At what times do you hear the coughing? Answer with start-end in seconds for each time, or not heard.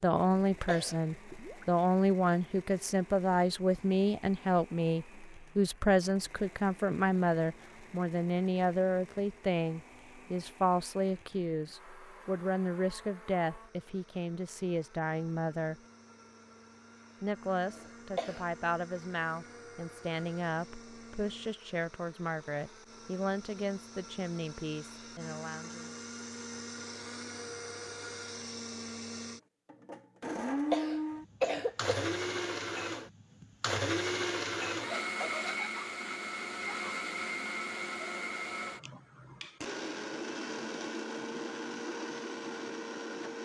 0.2-0.9, 17.7-18.4, 30.2-31.9.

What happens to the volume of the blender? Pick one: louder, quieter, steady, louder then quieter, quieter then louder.
louder.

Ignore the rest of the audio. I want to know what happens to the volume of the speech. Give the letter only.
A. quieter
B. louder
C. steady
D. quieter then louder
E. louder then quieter
A.